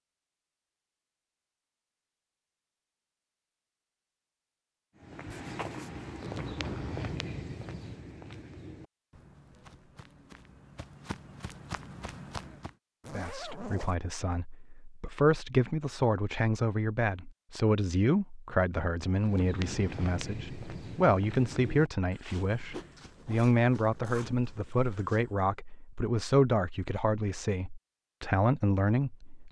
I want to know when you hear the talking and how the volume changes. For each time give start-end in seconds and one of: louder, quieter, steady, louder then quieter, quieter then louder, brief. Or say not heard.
13.1-29.4 steady.